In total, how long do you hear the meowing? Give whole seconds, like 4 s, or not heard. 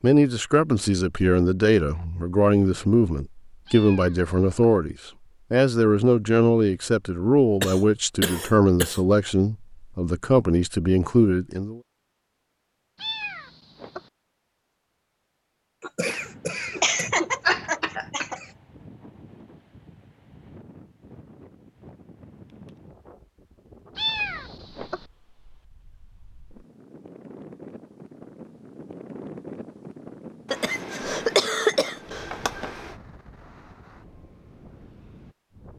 3 s.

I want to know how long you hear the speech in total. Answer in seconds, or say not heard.
12 s.